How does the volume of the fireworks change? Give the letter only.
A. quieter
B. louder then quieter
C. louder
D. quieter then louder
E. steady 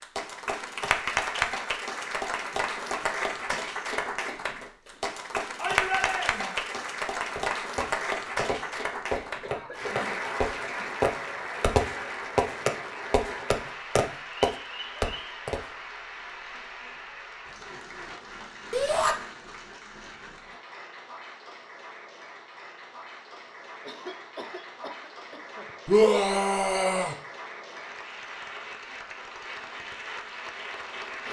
C.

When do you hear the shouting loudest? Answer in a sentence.
The loudest moment of the shouting is at 26 seconds.